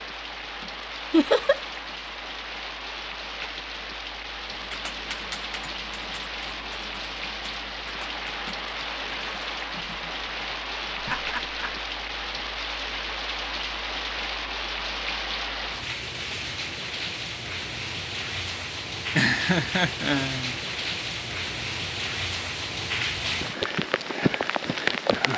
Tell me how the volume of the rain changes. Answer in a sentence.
The volume of the rain goes up.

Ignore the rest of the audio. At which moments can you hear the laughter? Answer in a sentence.
You can hear the laughter from 1.1 to 1.6 s, from 10.9 to 11.8 s and from 19.1 to 20.6 s.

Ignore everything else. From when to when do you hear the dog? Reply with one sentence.
The dog can't be heard in this clip.